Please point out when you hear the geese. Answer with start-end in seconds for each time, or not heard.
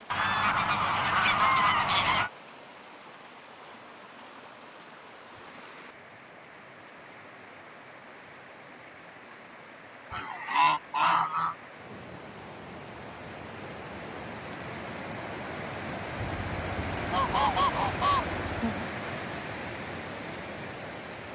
0.1-2.3, 10.1-11.6, 16.1-18.9.